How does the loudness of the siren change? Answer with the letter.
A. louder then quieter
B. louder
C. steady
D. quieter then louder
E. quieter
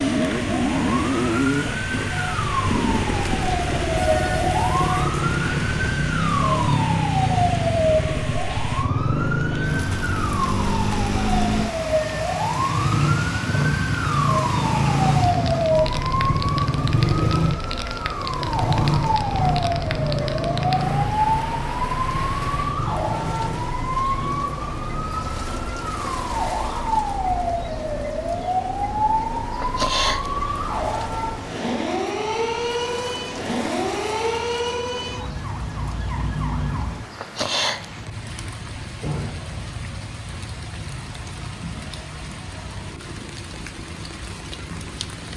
C.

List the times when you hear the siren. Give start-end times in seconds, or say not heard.
0.0-37.0.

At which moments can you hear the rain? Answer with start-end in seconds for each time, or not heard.
0.0-45.3.